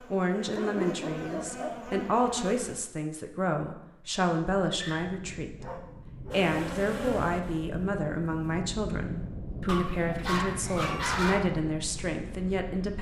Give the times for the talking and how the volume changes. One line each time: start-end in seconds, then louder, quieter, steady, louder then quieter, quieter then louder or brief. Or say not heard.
0.1-12.9 steady.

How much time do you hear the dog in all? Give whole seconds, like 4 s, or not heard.
5 s.